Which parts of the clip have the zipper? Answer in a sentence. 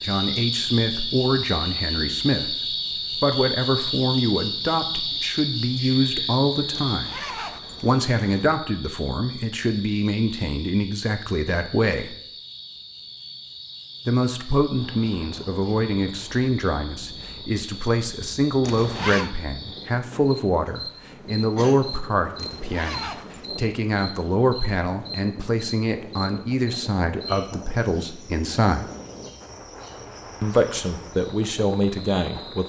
You can hear the zipper from 6.7 to 8.4 s, from 18.6 to 19.3 s and from 22.4 to 23.5 s.